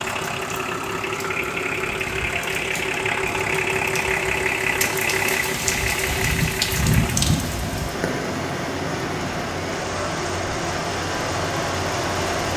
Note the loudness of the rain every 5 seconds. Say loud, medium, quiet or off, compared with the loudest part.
medium, loud, medium.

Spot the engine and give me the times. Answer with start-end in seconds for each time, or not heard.
0.0-12.5.